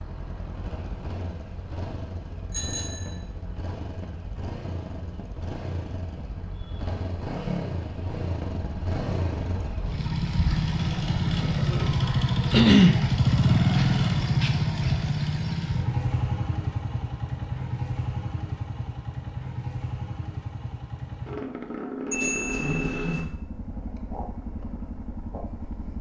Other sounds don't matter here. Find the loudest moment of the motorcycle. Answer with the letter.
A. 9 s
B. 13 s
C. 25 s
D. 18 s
B.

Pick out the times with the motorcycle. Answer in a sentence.
The motorcycle can be heard from 0.0 to 25.9 s.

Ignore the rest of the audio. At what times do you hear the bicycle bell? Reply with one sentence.
You can hear the bicycle bell from 2.5 to 3.1 s and from 22.1 to 23.2 s.